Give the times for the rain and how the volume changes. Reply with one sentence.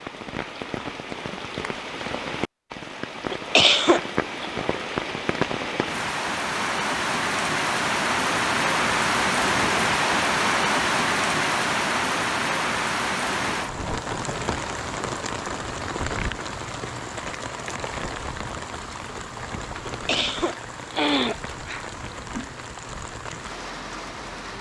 The rain can be heard from 0.0 to 24.5 s, getting louder then quieter.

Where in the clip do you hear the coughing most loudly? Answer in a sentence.
The volume of the coughing peaks at 4 seconds.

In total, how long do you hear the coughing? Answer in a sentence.
The coughing can be heard for 3 seconds in total.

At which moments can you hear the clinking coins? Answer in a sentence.
You can't hear the clinking coins here.